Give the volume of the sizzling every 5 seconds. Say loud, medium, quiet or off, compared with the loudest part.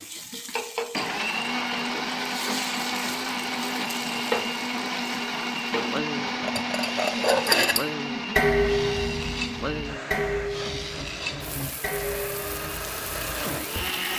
loud, loud, medium.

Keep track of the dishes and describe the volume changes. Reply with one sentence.
The volume of the dishes goes down.